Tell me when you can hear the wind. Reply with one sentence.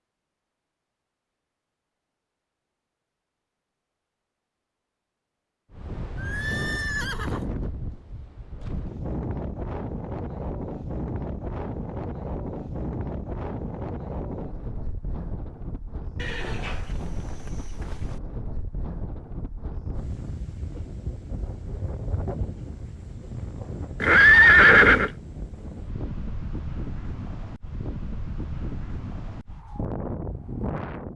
The wind can be heard from 5.7 to 31.1 s.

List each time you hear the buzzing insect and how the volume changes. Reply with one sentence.
The buzzing insect can't be heard in this clip.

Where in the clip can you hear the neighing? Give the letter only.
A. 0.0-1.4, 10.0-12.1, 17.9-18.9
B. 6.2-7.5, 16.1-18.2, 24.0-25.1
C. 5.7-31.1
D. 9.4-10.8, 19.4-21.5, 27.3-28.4
B.